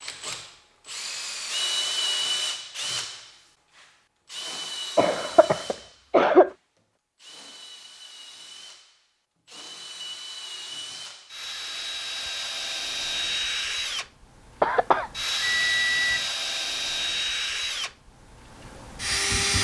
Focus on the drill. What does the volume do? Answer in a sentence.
The loudness of the drill goes down, then up.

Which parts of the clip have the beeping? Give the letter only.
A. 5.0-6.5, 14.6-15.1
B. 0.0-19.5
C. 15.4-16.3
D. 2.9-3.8
C.